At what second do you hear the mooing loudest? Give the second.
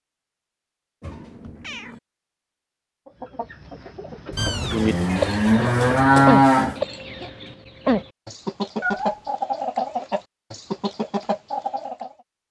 6 s.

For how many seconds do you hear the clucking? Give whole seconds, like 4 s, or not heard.
9 s.